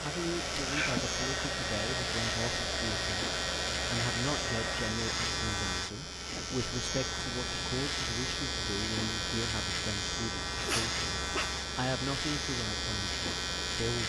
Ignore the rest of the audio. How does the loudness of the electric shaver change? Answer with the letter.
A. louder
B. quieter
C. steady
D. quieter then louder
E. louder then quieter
C.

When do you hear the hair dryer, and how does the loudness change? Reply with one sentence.
You can hear the hair dryer from 0.0 to 5.0 s, at a steady volume.